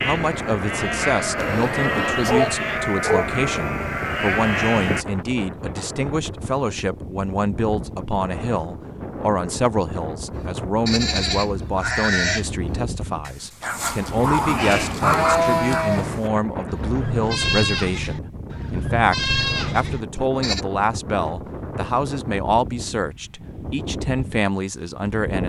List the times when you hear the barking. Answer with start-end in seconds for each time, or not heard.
1.4-3.3, 13.6-15.9.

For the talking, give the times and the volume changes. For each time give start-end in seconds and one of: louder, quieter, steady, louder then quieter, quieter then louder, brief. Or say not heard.
0.0-25.4 steady.